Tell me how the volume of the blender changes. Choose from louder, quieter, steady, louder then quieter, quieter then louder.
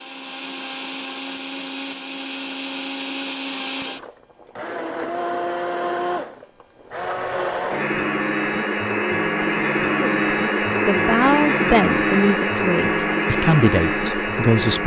louder.